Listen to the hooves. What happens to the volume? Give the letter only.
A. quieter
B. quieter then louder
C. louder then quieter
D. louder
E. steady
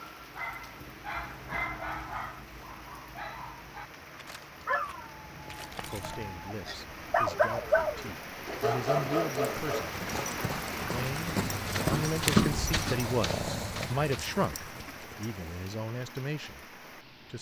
C.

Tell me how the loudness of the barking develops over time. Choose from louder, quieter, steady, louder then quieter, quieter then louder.
quieter then louder.